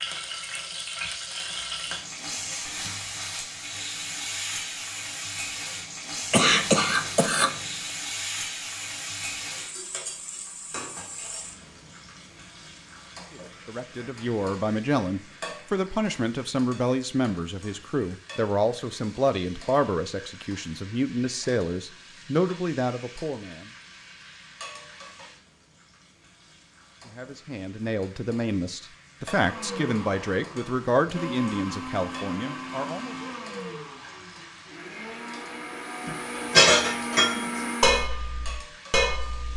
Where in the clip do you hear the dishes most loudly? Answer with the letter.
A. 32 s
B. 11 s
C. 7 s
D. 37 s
D.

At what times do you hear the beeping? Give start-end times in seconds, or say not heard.
not heard.